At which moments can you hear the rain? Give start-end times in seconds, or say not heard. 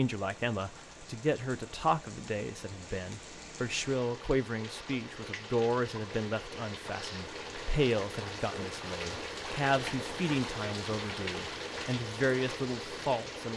0.0-13.5.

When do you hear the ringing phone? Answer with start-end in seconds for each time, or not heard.
not heard.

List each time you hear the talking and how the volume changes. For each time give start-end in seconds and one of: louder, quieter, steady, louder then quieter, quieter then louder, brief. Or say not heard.
0.0-13.5 steady.